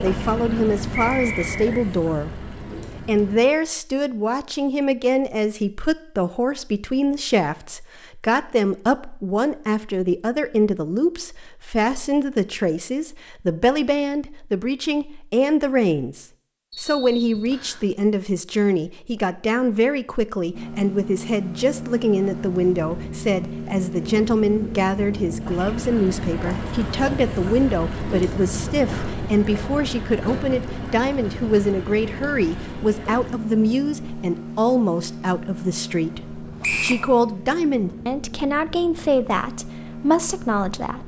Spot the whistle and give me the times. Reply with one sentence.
The whistle can be heard from 0.9 to 1.9 s, from 16.7 to 17.8 s and from 36.6 to 37.0 s.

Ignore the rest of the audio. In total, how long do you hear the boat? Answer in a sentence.
You can hear the boat for 24 seconds altogether.